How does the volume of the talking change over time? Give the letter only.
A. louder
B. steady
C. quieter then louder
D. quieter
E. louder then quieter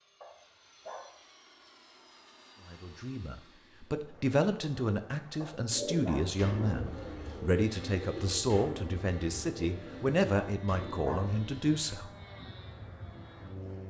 B.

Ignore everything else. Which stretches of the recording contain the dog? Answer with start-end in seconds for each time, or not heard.
0.2-1.1, 5.4-6.3, 10.4-11.3.